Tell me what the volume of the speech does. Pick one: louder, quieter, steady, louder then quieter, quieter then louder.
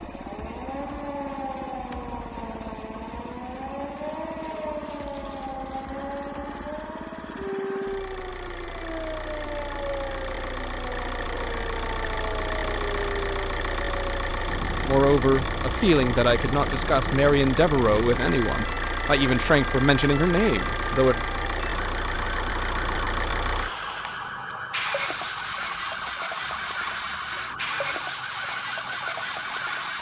steady.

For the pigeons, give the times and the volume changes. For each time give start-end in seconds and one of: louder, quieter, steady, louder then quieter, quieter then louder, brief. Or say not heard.
not heard.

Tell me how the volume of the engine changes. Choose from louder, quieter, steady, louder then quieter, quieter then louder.
louder.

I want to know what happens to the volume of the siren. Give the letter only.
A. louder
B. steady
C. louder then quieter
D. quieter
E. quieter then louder
B.